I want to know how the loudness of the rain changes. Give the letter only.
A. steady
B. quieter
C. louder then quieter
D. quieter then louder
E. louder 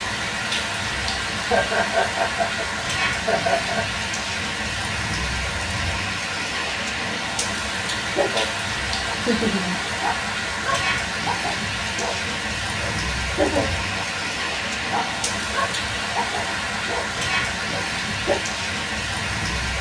A.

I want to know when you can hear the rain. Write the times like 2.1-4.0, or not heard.
0.0-19.7.